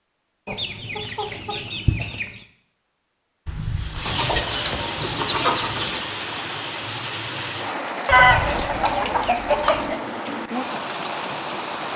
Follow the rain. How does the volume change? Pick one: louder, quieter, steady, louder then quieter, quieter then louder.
steady.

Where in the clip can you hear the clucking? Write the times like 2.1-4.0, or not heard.
0.5-2.4, 4.0-6.0, 8.1-9.9.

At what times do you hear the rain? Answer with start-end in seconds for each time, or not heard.
4.0-11.9.